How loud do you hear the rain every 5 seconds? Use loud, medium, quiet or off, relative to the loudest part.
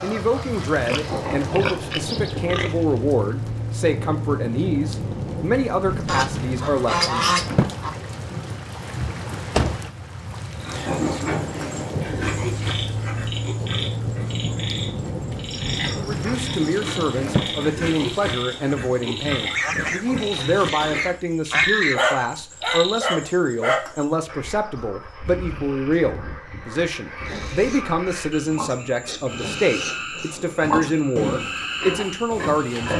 loud, loud, loud, loud, off, off, off.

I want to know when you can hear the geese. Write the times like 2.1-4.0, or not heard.
6.0-7.9, 19.5-22.3.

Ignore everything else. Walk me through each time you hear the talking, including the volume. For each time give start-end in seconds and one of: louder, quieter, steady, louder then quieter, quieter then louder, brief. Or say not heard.
0.0-7.2 steady
15.9-32.9 steady.